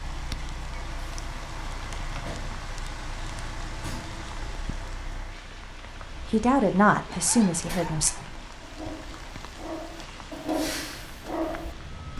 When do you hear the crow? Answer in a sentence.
The crow can't be heard in this clip.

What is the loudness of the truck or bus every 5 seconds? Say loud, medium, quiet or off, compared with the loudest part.
loud, medium, loud.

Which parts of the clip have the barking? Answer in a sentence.
The barking can be heard from 7.0 to 12.1 s.